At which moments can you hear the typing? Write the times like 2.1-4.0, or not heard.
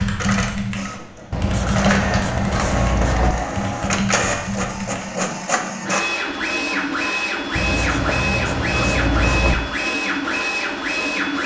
0.0-5.2.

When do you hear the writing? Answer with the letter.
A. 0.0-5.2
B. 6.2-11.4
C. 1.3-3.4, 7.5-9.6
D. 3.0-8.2
C.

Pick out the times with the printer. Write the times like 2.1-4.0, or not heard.
0.0-11.4.